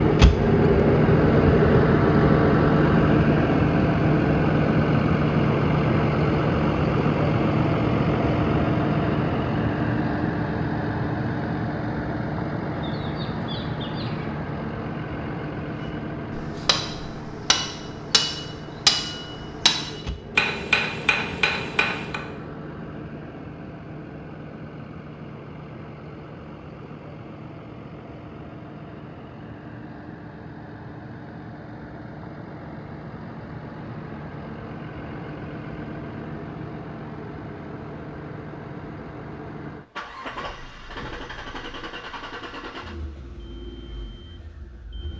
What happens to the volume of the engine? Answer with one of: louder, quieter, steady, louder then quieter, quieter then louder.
quieter.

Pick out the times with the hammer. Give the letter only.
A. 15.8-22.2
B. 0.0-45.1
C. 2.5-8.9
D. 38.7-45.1
A.